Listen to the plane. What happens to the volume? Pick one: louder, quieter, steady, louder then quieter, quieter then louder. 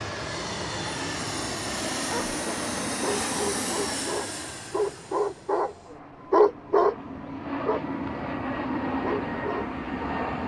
quieter then louder.